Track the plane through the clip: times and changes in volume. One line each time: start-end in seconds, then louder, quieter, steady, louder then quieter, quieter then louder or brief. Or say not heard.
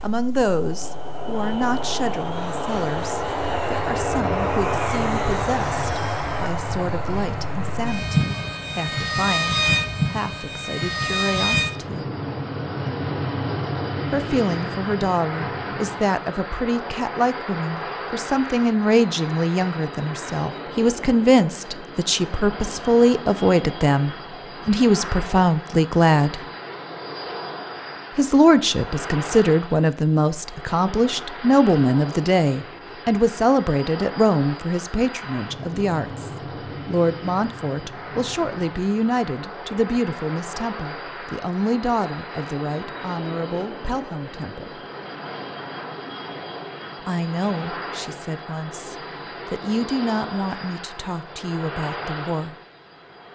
0.0-53.3 quieter.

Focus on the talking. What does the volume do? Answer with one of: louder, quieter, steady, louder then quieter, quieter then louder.
louder then quieter.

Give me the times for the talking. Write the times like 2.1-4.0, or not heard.
0.0-12.1, 14.1-26.4, 28.1-44.8, 47.0-52.5.